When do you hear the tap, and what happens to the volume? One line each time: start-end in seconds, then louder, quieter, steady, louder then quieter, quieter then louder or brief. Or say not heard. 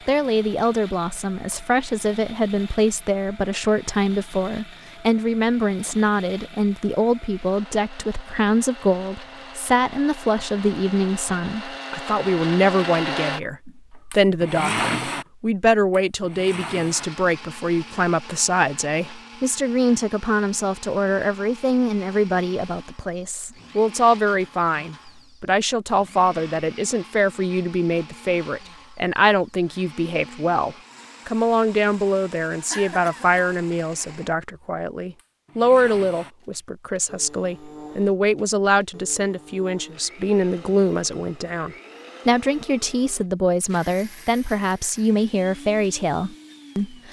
not heard.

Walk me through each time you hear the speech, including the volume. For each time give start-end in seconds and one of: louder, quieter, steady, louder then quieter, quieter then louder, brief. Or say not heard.
0.1-47.0 steady.